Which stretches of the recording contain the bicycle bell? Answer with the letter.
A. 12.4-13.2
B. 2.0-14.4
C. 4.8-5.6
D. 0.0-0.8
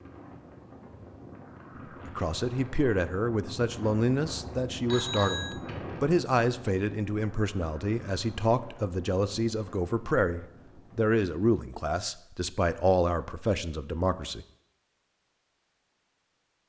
C.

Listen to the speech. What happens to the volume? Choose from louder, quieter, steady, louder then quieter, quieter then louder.
steady.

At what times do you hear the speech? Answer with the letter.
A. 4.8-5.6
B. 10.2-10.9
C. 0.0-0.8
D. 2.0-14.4
D.